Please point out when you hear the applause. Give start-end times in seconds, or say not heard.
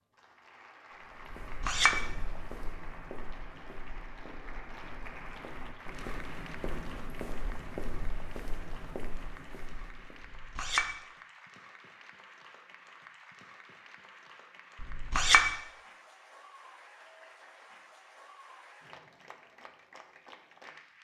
0.1-20.9.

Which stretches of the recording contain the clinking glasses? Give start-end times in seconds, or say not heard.
1.3-2.0, 10.2-10.9, 14.8-15.5.